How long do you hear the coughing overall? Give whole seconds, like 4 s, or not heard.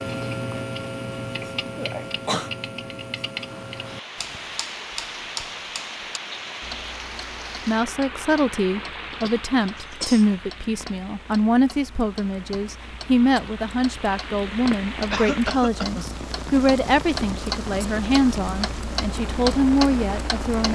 3 s.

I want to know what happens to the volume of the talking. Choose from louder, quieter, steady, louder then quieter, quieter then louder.
steady.